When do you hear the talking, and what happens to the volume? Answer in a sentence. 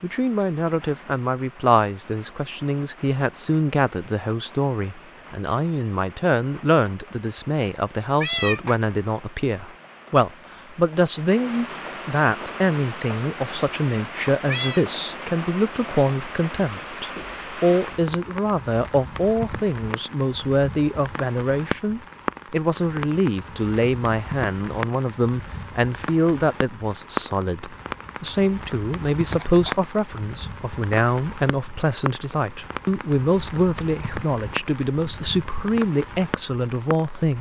You can hear the talking from 0.0 to 37.3 s, at a steady volume.